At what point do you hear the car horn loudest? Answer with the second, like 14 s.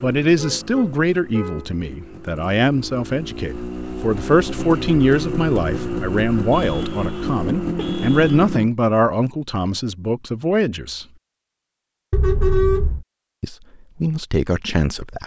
13 s.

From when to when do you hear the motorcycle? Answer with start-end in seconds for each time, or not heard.
0.0-8.7.